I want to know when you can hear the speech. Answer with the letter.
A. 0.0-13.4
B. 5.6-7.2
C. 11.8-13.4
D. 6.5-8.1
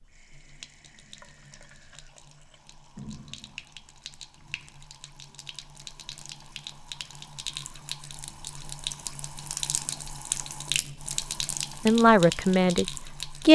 C.